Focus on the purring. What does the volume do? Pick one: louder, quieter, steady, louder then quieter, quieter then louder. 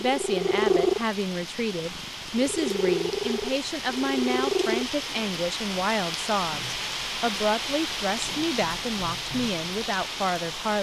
quieter then louder.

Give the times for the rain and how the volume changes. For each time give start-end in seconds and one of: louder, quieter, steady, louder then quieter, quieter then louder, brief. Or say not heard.
0.0-10.7 louder.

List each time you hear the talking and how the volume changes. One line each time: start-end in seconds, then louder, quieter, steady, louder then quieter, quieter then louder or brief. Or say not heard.
0.0-10.7 steady.